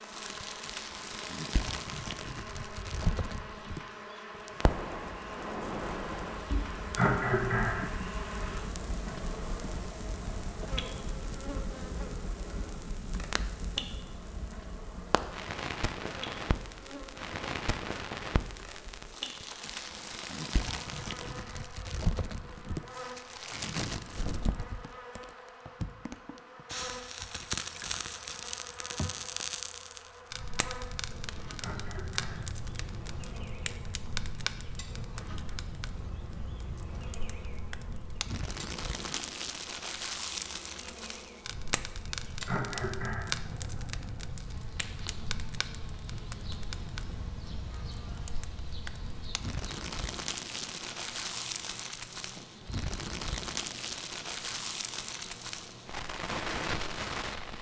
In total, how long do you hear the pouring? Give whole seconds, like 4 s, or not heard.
2 s.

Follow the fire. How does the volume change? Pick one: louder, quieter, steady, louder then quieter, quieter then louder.
steady.